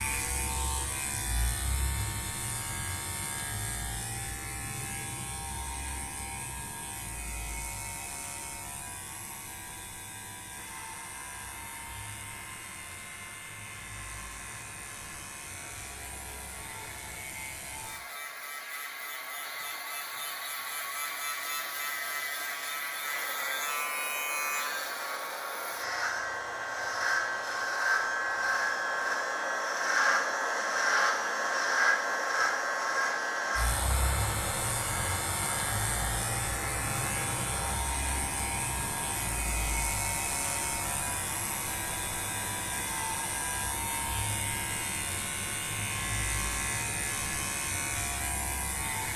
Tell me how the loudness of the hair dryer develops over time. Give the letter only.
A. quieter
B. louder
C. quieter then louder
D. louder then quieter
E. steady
D.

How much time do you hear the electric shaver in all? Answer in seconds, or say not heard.
49 s.